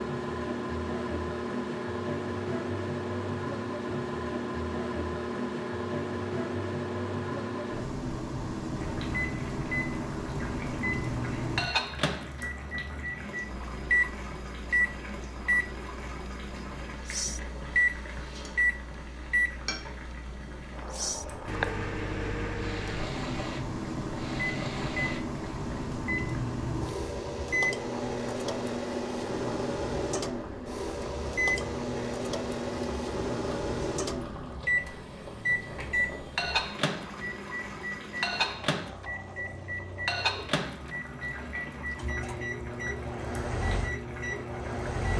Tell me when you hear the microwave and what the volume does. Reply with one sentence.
The microwave can be heard from 0.0 to 45.1 s, at a steady volume.